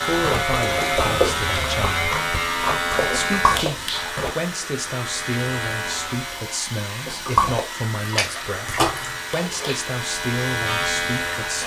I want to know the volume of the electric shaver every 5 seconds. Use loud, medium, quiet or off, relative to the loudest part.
loud, medium, loud.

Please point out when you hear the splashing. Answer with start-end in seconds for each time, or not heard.
0.1-4.3, 7.0-9.8.